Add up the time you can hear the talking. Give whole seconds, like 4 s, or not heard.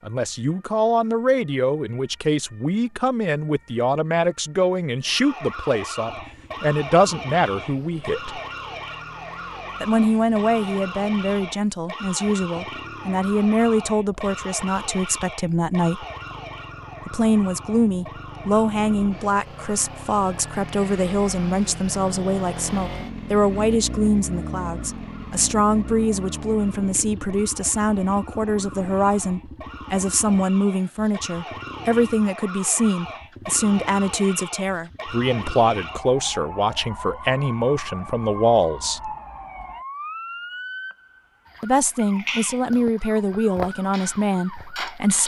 40 s.